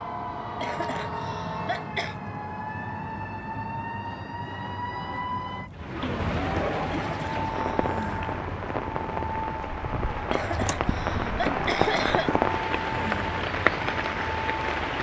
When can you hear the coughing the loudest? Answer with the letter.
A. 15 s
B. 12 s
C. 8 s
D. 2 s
B.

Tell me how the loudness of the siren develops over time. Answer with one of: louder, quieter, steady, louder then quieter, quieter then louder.
steady.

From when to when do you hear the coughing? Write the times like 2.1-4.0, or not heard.
0.6-2.1, 6.9-7.9, 10.3-12.3.